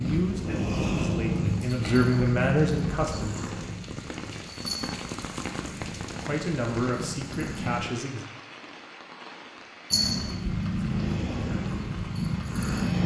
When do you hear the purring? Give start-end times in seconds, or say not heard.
0.0-7.8, 9.9-13.0.